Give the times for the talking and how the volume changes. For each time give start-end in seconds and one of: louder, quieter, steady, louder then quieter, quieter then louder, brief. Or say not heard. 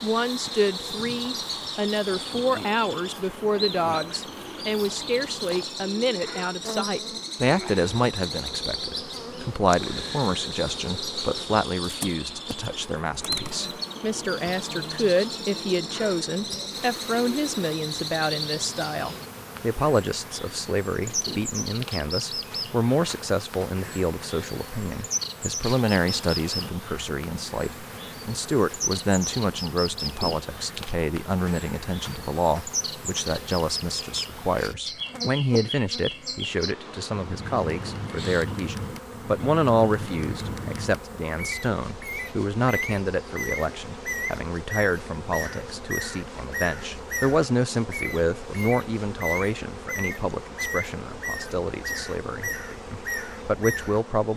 0.0-54.3 steady.